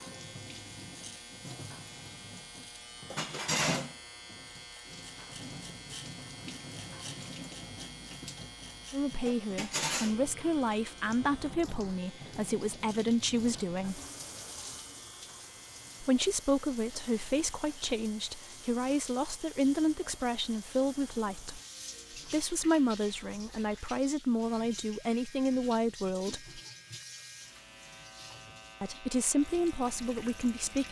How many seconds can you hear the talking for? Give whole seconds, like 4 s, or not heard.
18 s.